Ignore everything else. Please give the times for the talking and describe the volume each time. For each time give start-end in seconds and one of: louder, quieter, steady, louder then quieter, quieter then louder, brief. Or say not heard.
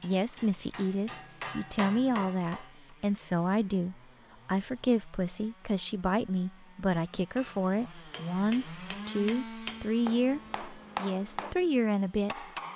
0.0-12.4 steady.